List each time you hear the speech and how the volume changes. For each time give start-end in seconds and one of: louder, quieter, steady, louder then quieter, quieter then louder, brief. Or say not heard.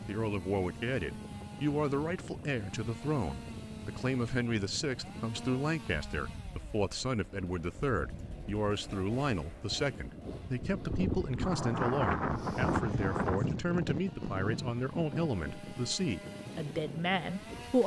0.1-17.8 steady.